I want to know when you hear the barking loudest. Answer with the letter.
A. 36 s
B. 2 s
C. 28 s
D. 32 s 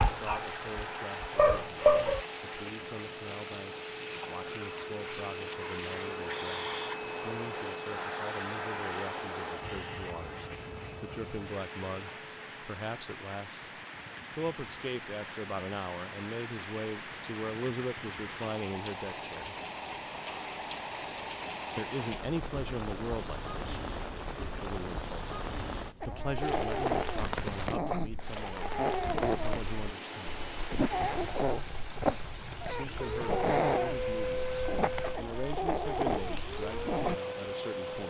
B.